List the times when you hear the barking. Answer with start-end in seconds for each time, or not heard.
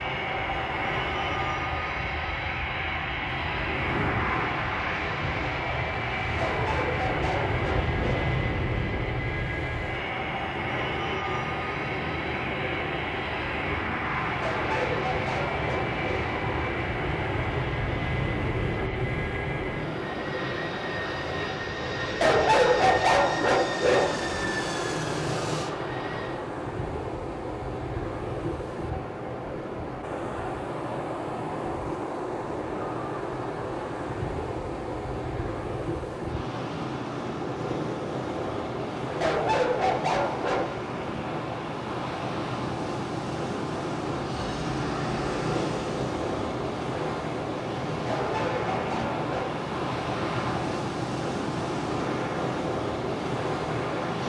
6.3-8.3, 14.4-16.3, 22.2-24.1, 39.2-40.8, 48.0-49.6.